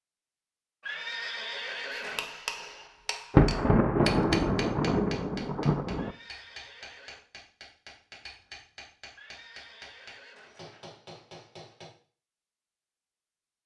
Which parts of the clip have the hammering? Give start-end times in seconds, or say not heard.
1.9-11.8.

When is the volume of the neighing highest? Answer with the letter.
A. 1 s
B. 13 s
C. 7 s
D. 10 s
A.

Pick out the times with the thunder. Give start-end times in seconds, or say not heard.
3.3-6.2.